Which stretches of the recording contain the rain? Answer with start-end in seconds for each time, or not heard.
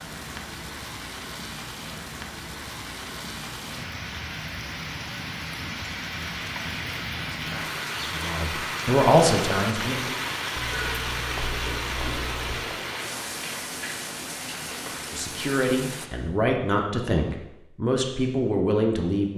0.0-16.1.